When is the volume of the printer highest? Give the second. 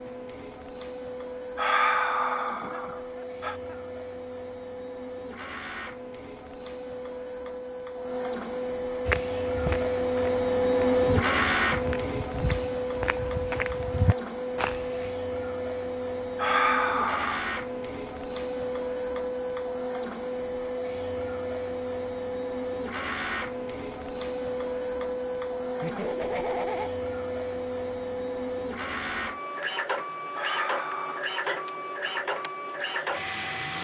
11 s.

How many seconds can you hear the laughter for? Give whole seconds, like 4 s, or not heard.
2 s.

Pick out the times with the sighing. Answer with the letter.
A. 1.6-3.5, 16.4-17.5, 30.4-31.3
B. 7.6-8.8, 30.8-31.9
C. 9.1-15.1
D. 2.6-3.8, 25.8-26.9
A.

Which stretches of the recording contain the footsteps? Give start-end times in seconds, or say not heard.
9.1-15.1.